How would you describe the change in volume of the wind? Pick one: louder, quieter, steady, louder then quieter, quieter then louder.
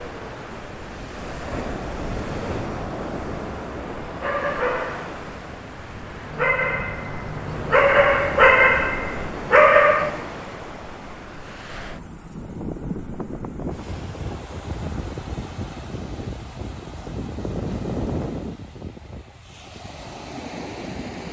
steady.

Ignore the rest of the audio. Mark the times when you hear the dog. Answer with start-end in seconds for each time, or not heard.
4.2-10.2.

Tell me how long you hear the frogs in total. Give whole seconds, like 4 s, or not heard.
not heard.